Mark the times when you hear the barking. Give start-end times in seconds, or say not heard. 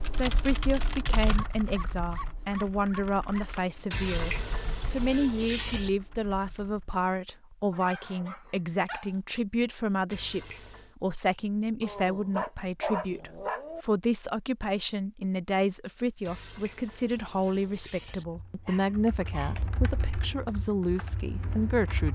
1.3-3.2, 7.7-9.2, 11.8-13.8, 18.6-19.7.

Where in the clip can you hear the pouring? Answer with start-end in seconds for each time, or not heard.
3.9-5.9, 10.1-10.9, 16.2-18.2.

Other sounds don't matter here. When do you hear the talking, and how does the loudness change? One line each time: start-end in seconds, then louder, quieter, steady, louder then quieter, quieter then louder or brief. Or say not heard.
0.1-22.1 steady.